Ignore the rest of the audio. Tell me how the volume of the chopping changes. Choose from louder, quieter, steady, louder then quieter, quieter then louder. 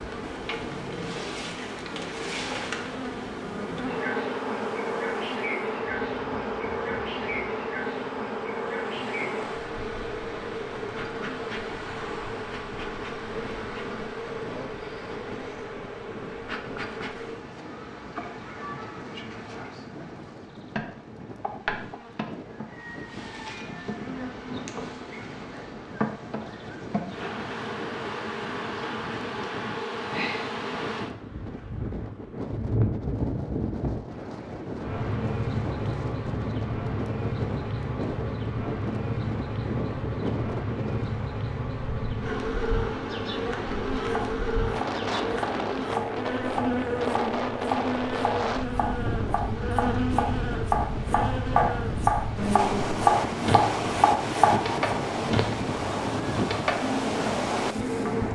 louder.